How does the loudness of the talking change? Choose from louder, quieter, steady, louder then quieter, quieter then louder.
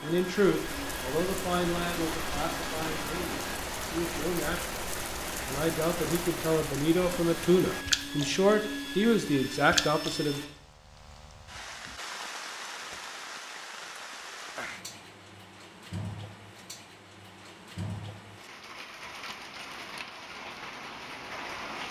quieter then louder.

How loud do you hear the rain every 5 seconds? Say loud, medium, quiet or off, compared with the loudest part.
loud, loud, medium, medium, medium.